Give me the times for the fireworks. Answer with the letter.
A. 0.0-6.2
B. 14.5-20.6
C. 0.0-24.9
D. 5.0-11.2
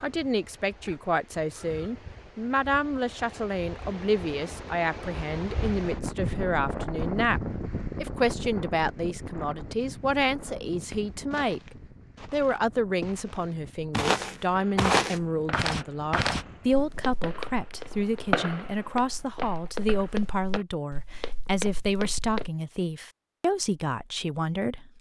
B.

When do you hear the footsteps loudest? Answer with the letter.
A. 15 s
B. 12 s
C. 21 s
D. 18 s
A.